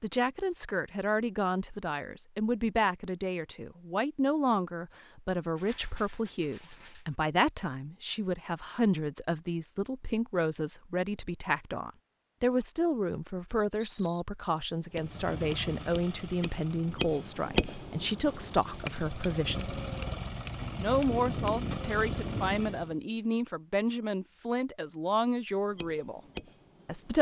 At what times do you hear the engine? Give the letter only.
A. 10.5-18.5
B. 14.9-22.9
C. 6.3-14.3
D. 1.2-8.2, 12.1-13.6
B.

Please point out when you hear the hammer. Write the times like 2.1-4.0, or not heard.
14.8-21.7, 25.6-27.1.